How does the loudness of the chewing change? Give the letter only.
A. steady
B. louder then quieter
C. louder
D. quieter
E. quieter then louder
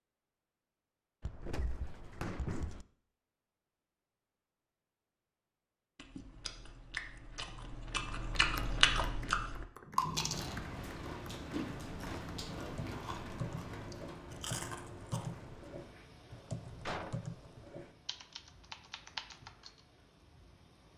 B.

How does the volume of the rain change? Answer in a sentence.
The loudness of the rain goes down.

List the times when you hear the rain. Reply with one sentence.
You can hear the rain from 10.3 to 20.9 s.